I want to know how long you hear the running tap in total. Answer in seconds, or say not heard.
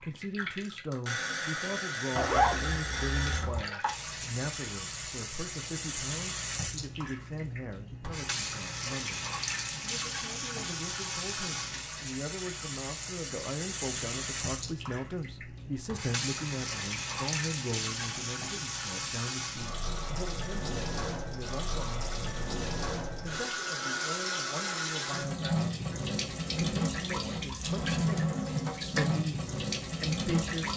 31 s.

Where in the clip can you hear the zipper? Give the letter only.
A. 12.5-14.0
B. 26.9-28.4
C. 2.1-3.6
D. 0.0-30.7
C.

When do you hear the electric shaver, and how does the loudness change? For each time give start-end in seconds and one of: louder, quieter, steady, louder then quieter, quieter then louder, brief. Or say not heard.
not heard.